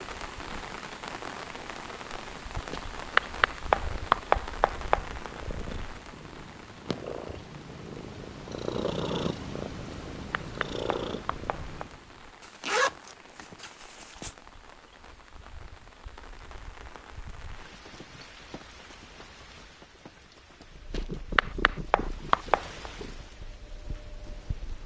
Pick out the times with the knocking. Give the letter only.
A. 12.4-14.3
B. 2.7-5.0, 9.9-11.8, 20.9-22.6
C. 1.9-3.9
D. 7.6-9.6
B.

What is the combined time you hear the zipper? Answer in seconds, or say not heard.
2 s.